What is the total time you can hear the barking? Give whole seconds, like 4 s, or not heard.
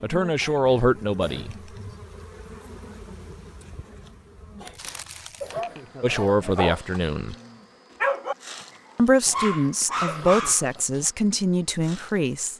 5 s.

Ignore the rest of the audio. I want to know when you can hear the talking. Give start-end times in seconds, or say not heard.
0.0-1.6, 6.0-7.3, 8.9-12.5.